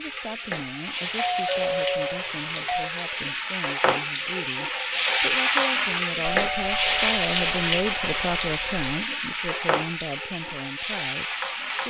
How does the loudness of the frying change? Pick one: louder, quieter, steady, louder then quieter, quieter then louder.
louder then quieter.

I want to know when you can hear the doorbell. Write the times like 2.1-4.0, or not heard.
1.1-2.9, 6.2-8.8.